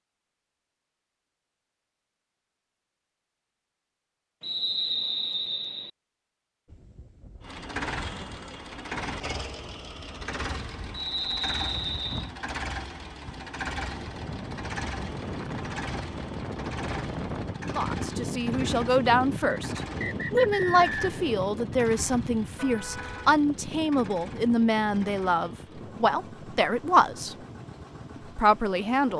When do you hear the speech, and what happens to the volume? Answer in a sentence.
The speech can be heard from 17.7 to 27.4 s, at a steady volume; and briefly from 28.1 to 29.1 s.